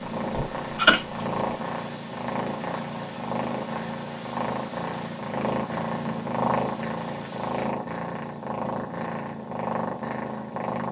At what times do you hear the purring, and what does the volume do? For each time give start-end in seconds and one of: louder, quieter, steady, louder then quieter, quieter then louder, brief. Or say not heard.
0.0-10.8 steady.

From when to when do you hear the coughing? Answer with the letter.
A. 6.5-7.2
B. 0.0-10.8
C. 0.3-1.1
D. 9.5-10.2
C.